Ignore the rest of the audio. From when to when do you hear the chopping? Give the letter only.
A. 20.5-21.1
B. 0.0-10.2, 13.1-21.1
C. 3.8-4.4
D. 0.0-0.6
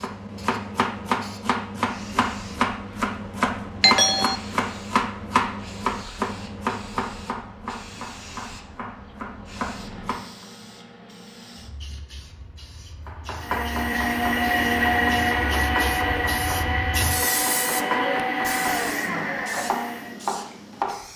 B.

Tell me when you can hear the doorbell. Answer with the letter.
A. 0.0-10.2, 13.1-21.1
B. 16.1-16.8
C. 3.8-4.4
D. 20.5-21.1
C.